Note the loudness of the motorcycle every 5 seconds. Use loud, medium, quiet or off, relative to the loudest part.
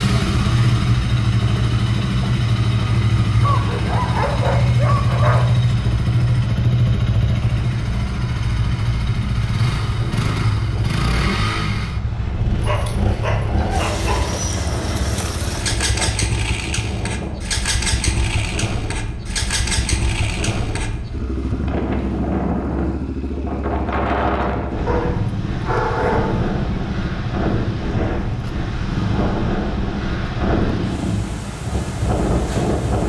loud, loud, medium, medium, medium, medium, medium.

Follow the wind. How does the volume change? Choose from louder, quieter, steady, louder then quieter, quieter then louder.
louder.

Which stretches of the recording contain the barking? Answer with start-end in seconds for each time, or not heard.
3.4-5.5, 12.6-14.4, 24.9-26.5.